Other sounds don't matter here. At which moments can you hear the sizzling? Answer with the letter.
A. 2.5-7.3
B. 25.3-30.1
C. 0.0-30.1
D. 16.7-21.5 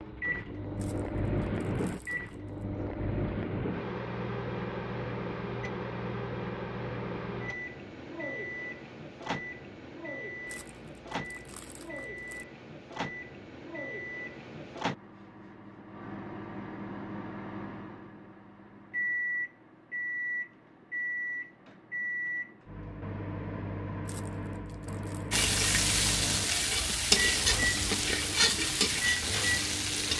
B.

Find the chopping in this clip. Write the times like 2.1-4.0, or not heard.
not heard.